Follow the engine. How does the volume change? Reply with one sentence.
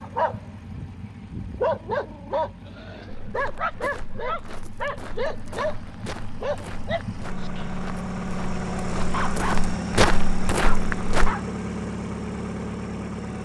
The volume of the engine goes up.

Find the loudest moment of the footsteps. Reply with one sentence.
The loudest moment of the footsteps is at 10 seconds.